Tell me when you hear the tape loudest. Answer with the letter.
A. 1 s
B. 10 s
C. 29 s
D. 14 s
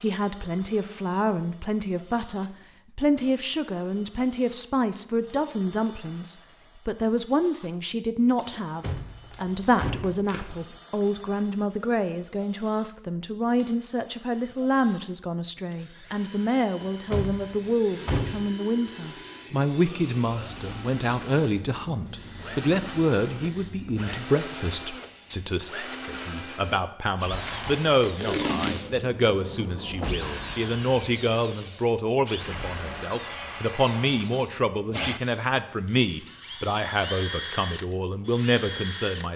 C.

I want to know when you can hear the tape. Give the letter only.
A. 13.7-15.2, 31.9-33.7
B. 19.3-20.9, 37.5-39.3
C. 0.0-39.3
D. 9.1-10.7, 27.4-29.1
D.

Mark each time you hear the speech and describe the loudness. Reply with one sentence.
You can hear the speech from 0.0 to 39.3 s, at a steady volume.